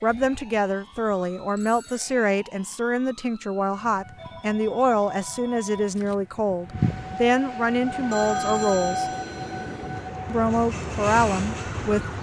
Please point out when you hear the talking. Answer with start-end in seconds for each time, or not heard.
0.0-9.1, 10.2-12.0.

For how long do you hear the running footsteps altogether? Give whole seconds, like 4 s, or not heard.
not heard.